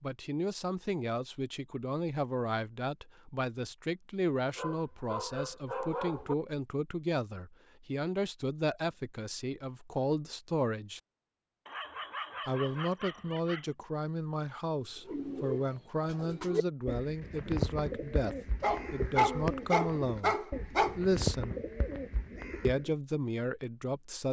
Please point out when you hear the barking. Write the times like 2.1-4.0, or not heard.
4.3-6.3, 11.7-13.7, 18.6-21.0.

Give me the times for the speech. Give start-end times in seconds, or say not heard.
0.0-11.0, 12.4-21.6, 22.6-24.2.